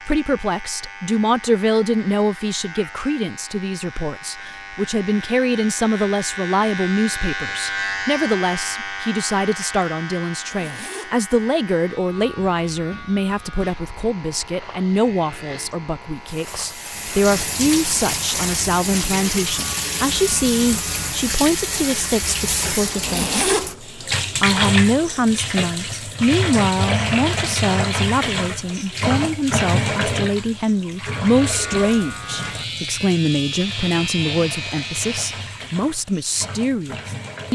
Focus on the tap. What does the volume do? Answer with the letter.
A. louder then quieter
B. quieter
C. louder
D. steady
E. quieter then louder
B.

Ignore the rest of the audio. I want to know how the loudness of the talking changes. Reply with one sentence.
The volume of the talking stays about the same.